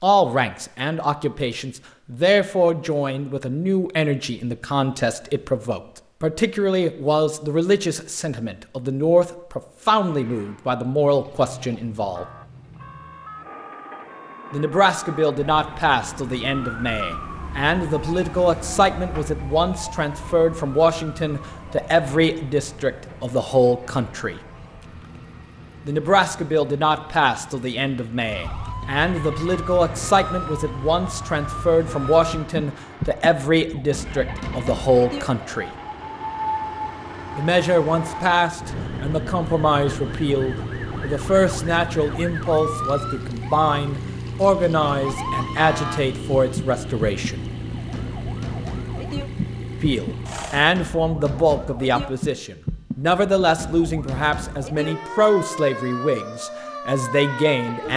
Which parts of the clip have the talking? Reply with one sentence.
You can hear the talking from 0.0 to 12.2 s, from 14.5 to 24.4 s, from 25.9 to 35.7 s, from 37.4 to 47.5 s and from 49.8 to 57.9 s.